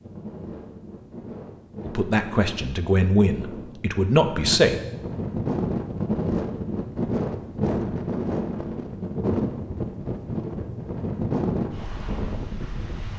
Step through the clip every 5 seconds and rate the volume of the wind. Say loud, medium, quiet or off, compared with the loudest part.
medium, loud, loud.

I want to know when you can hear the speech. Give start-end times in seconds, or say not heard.
1.9-4.8.